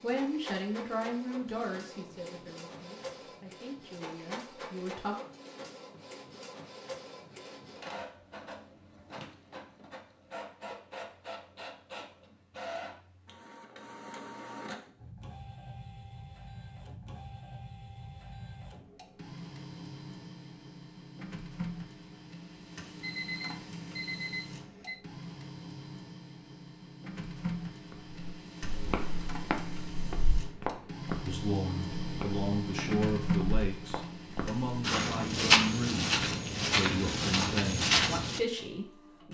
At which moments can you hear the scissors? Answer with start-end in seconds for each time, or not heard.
not heard.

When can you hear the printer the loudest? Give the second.
33 s.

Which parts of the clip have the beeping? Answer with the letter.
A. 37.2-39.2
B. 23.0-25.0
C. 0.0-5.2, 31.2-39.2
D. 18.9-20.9
B.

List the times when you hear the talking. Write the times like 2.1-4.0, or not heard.
0.0-5.2, 31.2-39.2.